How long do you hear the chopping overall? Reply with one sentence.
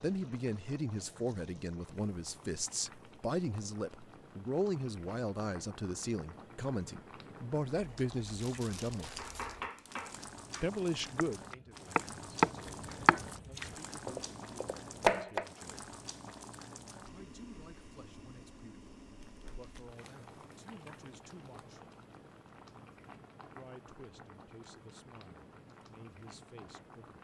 You can hear the chopping for 6 seconds altogether.